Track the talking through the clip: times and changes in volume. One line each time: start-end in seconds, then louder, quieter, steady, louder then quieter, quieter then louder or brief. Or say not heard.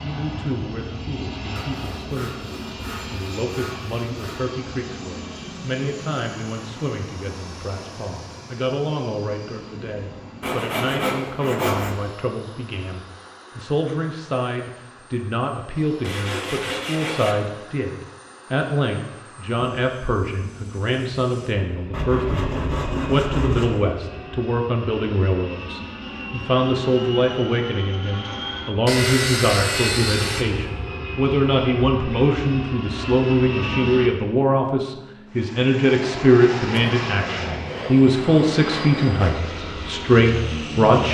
0.0-41.0 louder.